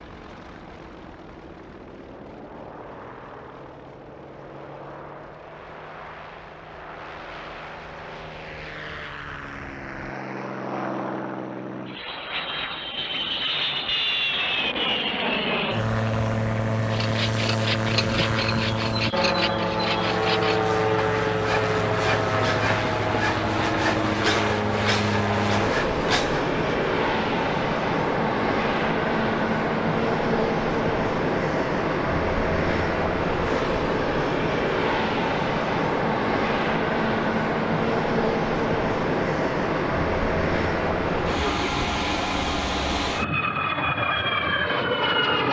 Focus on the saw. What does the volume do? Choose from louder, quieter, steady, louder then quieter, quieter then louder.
steady.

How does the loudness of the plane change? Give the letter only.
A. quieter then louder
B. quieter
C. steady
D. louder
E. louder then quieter
D.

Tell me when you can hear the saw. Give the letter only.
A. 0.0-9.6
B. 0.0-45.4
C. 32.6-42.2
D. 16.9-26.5
D.